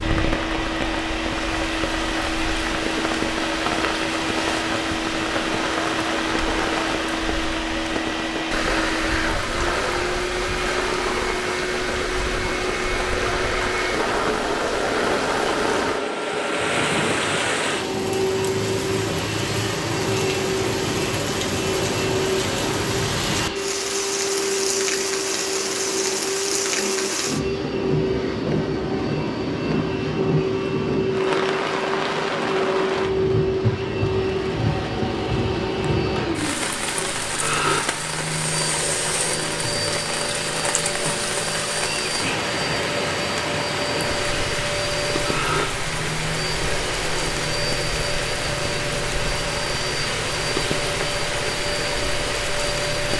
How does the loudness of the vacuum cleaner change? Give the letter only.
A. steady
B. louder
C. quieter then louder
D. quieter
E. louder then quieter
A.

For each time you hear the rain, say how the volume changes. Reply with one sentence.
You can hear the rain from 0.0 to 53.1 s, at a steady volume.